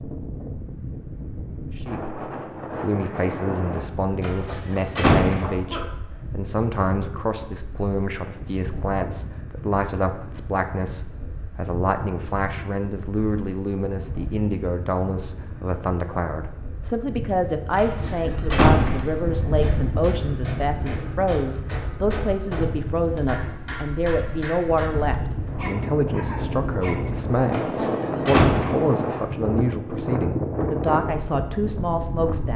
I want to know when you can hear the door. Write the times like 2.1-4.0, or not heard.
4.2-5.5, 17.8-19.1, 27.5-28.9.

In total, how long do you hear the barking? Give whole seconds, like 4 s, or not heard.
3 s.